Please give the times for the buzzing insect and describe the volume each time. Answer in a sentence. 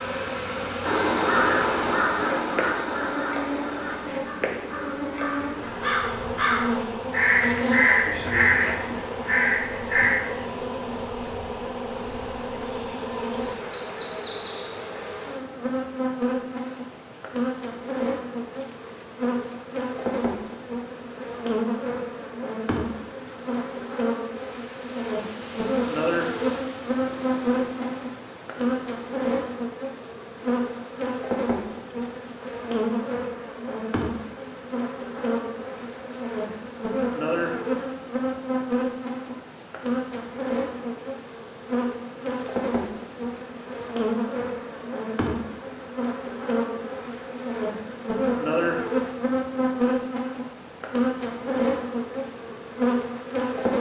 You can hear the buzzing insect from 0.0 to 53.7 s, at a steady volume.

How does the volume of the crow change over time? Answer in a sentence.
The volume of the crow goes down, then up.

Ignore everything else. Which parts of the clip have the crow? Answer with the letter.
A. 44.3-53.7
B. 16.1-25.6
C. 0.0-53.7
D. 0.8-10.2
D.